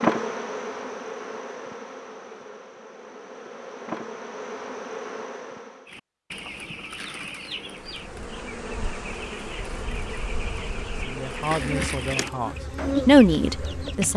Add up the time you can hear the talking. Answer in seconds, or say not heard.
3 s.